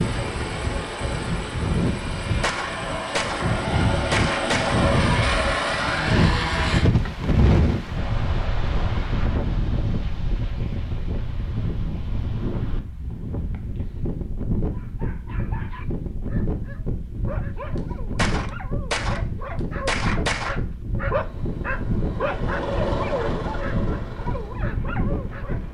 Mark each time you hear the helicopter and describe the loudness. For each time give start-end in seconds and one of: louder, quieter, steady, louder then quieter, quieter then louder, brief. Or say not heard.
0.0-6.8 louder
21.1-25.6 louder then quieter.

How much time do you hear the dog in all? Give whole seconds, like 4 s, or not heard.
11 s.